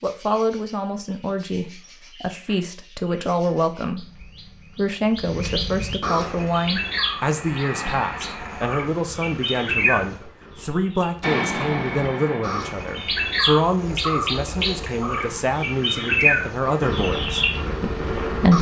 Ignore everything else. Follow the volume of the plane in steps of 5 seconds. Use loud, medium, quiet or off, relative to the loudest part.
off, medium, loud, off.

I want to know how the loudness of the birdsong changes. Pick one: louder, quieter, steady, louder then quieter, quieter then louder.
louder.